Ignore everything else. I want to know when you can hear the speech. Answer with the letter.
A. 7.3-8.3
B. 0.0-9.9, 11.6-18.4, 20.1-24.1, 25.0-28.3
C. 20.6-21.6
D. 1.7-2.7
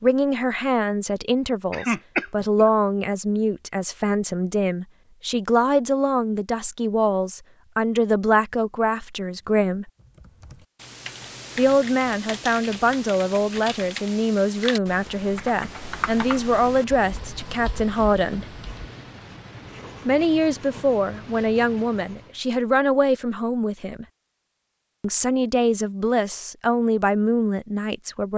B.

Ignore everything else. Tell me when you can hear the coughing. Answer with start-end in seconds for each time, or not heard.
1.7-2.7.